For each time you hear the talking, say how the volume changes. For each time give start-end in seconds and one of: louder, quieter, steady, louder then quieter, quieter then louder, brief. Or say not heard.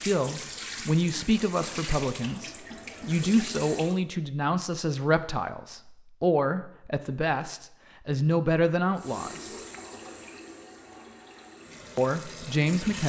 0.0-9.6 steady
11.9-13.0 brief.